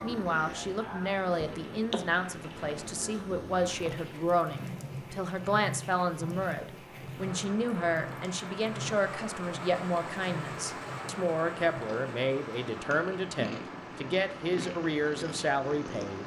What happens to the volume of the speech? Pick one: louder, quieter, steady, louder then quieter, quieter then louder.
steady.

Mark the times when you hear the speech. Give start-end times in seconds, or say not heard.
0.0-16.2.